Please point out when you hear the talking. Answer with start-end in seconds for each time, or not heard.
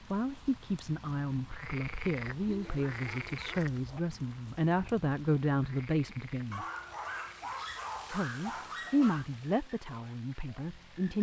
0.1-6.7, 8.1-11.1.